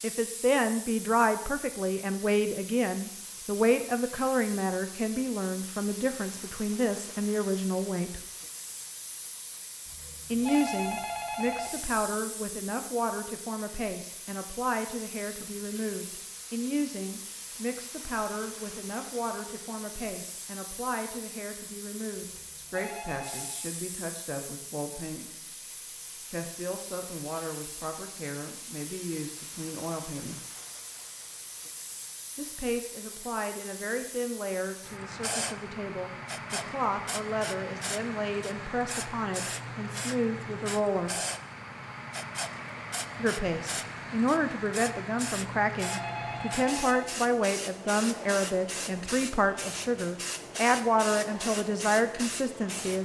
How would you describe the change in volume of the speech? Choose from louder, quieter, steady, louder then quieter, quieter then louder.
quieter then louder.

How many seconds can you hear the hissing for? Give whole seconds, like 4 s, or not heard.
53 s.